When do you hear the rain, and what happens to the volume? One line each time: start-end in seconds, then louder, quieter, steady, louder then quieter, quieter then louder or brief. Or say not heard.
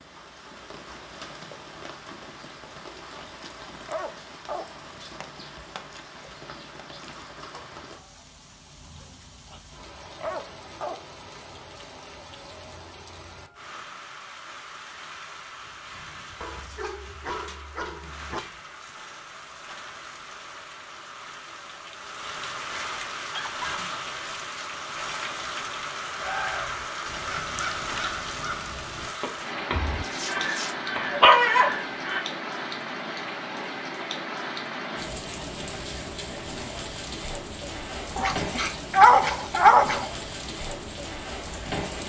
0.0-42.0 louder.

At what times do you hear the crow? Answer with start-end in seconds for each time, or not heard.
26.1-32.2.